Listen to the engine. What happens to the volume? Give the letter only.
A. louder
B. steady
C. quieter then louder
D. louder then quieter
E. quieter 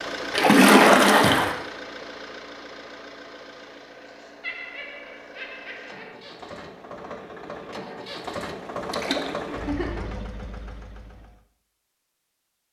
C.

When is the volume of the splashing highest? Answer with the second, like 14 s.
1 s.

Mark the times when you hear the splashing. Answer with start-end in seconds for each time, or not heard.
0.3-1.6, 8.9-9.3.